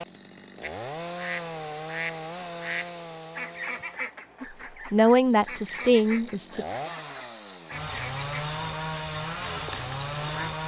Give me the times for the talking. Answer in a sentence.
The talking can be heard from 4.4 to 6.7 s.